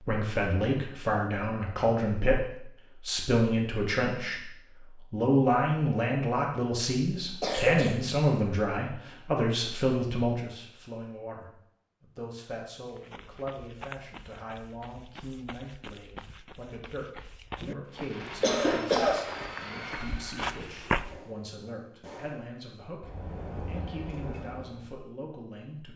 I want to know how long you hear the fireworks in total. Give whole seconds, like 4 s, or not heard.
7 s.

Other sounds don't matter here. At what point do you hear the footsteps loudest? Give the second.
21 s.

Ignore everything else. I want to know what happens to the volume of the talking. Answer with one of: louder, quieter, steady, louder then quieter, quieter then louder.
quieter.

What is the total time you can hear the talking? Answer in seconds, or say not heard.
25 s.